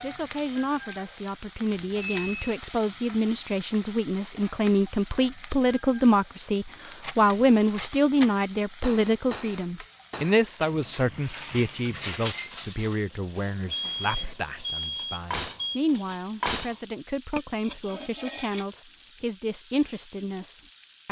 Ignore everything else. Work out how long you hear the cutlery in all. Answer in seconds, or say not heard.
12 s.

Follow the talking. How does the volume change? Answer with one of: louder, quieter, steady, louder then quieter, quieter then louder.
louder then quieter.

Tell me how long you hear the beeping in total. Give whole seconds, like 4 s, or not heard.
3 s.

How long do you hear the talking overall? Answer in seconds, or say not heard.
21 s.